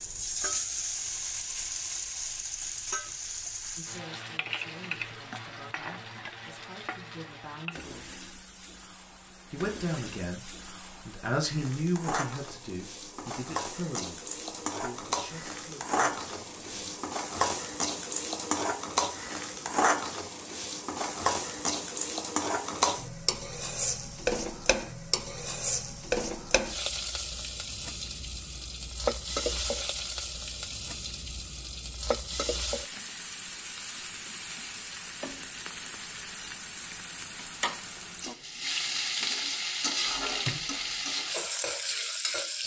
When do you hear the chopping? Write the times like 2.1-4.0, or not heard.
not heard.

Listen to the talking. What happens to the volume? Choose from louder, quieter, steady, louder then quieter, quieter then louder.
louder then quieter.